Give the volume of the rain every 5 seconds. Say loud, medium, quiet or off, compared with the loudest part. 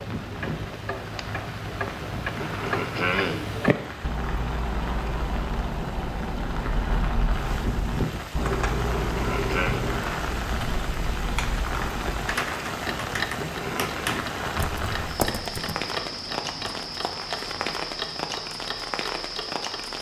medium, loud, loud, loud.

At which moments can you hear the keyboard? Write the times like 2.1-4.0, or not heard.
8.3-15.8.